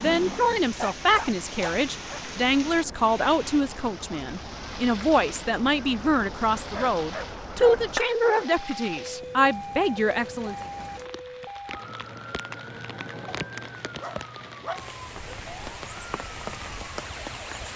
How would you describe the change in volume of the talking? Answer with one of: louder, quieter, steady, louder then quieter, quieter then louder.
steady.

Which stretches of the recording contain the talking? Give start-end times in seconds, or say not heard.
0.0-10.6.